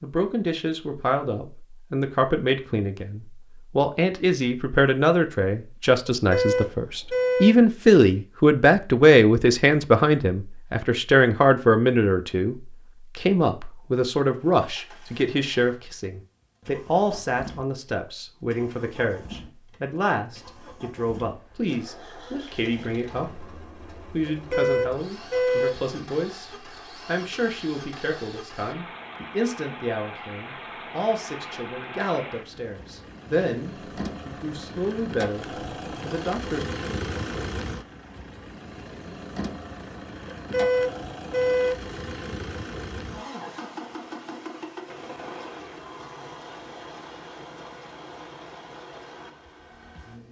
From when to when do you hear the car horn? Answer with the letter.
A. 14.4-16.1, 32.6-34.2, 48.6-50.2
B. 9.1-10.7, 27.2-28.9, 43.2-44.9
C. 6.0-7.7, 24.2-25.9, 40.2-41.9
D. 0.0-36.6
C.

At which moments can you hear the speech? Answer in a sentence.
The speech can be heard from 0.0 to 36.6 s.